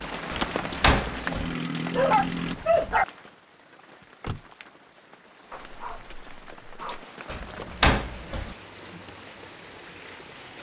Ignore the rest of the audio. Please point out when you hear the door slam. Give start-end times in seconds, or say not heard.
0.3-1.6, 7.2-8.6.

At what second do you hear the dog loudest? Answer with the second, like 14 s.
3 s.